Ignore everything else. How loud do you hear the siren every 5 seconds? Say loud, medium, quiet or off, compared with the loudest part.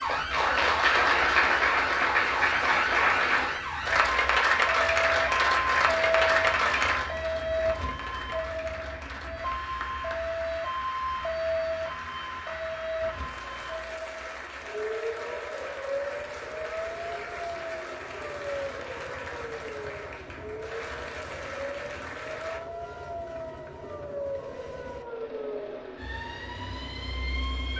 loud, loud, loud, medium, medium, medium.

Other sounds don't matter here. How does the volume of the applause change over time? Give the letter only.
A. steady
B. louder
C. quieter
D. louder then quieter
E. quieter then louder
C.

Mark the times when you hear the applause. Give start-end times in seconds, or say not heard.
0.0-22.6.